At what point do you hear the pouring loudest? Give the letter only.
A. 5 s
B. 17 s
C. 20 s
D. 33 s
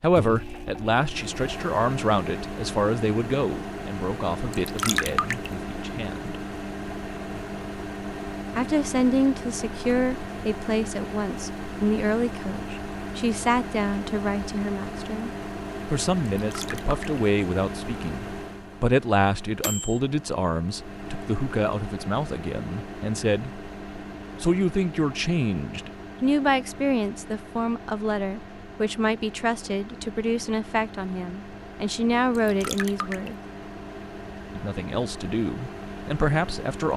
A.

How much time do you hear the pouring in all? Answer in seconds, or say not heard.
3 s.